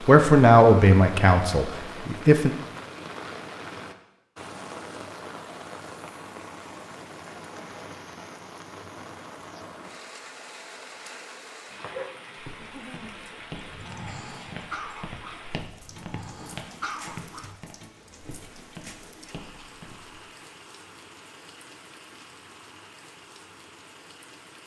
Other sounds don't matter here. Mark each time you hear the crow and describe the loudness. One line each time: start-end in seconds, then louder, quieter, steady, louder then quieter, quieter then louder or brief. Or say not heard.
not heard.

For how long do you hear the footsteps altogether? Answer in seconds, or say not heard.
8 s.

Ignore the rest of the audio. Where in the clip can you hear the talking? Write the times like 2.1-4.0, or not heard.
0.1-2.5.